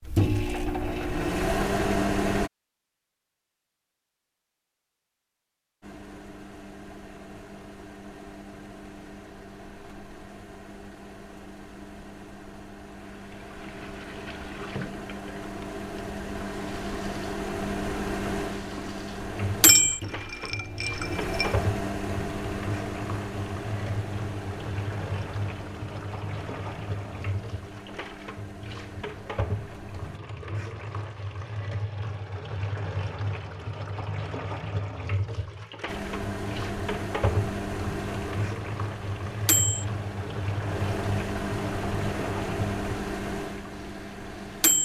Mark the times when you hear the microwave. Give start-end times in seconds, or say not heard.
0.0-2.5, 5.8-30.2, 35.9-44.8.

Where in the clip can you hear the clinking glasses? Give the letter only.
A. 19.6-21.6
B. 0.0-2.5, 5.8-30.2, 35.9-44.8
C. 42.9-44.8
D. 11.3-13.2
A.